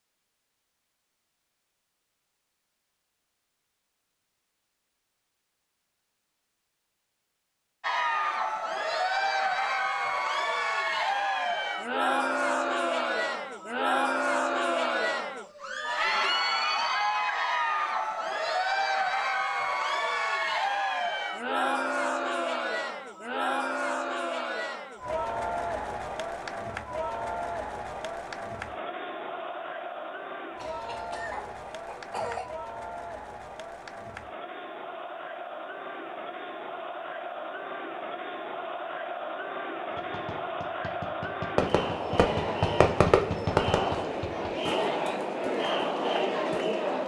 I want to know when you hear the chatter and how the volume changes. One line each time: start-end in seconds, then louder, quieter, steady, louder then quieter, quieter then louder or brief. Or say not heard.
7.8-47.0 quieter then louder.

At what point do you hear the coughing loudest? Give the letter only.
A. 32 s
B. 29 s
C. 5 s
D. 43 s
A.